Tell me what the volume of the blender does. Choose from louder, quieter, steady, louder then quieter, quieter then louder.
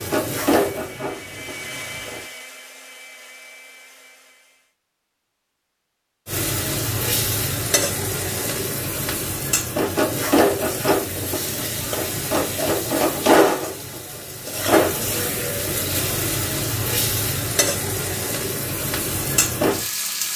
quieter.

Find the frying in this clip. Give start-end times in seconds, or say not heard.
0.0-2.2, 6.2-20.3.